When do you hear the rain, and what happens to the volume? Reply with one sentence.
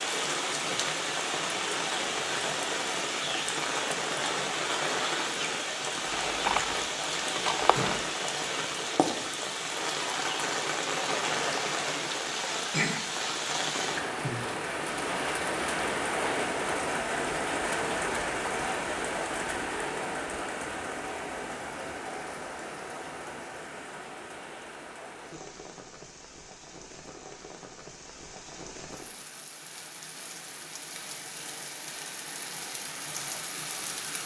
You can hear the rain from 0.0 to 34.2 s, getting quieter.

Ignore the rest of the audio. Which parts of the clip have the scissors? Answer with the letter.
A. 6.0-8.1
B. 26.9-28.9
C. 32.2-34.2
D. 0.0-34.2
A.